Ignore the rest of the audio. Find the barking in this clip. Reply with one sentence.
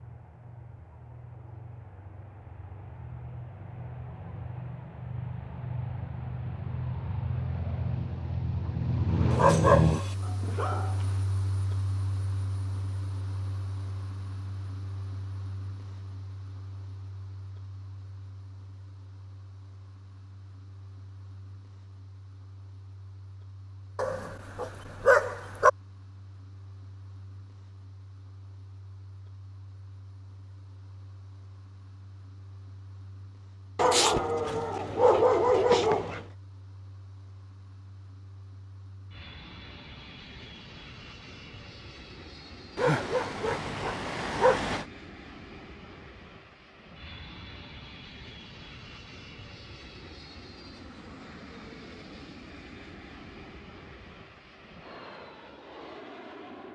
You can hear the barking from 9.3 to 11.1 s, from 23.9 to 25.7 s, from 33.8 to 36.2 s and from 42.8 to 44.9 s.